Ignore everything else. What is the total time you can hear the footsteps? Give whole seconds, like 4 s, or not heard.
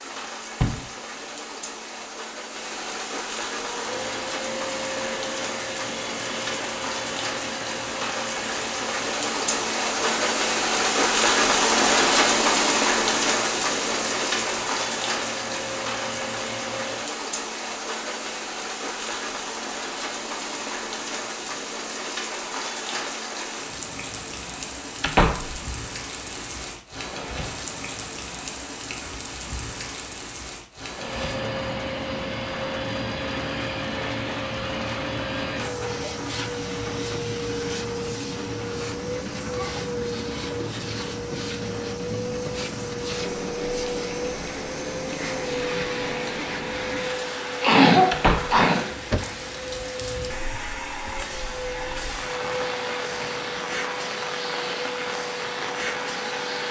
not heard.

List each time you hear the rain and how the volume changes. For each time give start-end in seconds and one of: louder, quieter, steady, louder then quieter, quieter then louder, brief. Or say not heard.
0.0-56.6 quieter.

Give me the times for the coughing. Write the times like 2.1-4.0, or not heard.
47.6-49.2.